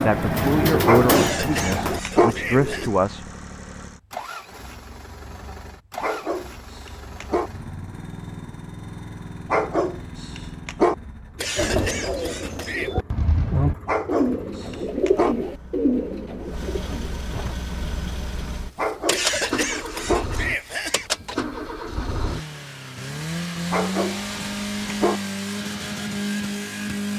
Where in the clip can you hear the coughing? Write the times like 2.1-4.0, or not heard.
1.1-3.0, 11.3-12.9, 19.1-21.1.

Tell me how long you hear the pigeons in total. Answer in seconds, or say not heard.
9 s.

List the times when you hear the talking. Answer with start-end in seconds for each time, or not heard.
0.0-3.2.